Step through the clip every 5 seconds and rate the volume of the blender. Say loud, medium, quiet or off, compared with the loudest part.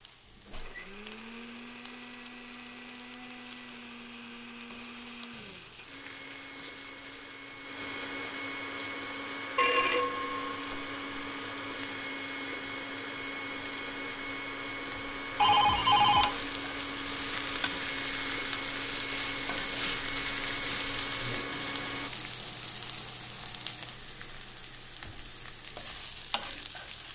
medium, loud, loud, loud, loud, off.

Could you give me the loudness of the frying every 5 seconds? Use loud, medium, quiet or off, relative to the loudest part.
quiet, quiet, quiet, loud, loud, medium.